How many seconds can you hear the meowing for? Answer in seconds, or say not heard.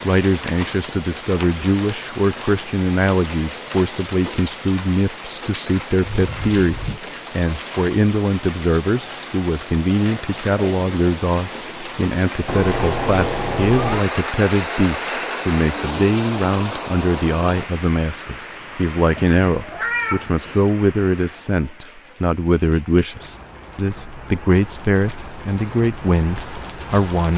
4 s.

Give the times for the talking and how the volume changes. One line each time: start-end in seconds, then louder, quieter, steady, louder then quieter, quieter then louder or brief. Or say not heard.
0.0-27.3 steady.